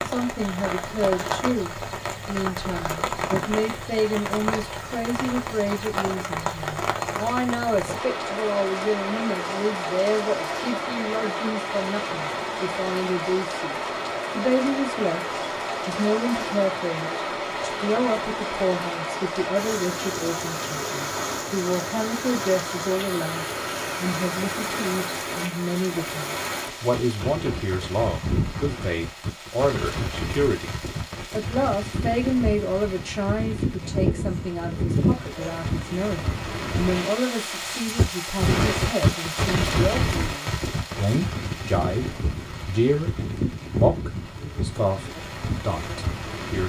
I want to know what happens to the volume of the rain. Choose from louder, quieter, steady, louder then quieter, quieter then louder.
steady.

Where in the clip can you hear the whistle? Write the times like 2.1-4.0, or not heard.
not heard.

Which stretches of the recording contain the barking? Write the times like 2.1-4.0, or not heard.
33.8-35.5.